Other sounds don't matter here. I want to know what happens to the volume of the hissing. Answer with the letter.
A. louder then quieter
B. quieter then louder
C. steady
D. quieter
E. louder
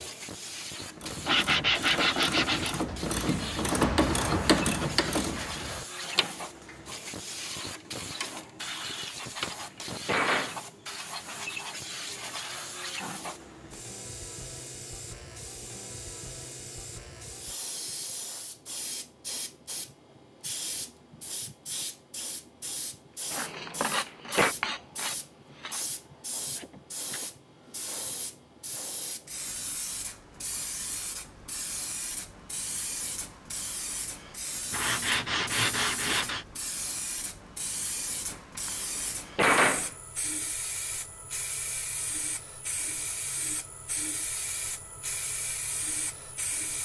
C.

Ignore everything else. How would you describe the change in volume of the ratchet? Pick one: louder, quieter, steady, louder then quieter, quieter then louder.
louder then quieter.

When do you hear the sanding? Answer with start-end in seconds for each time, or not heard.
1.2-2.8, 23.3-25.8, 34.7-36.5.